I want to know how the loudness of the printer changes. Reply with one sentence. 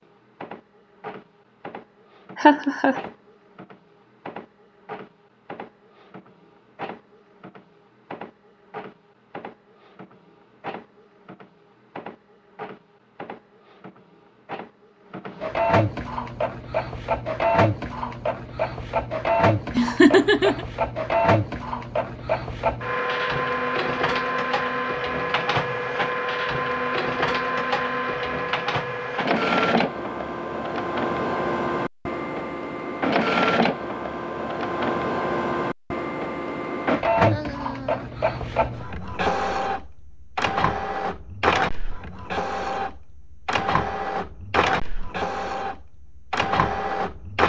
The loudness of the printer goes up.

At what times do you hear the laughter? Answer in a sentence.
The laughter can be heard from 2.4 to 3.0 s, from 19.8 to 20.6 s and from 37.3 to 38.1 s.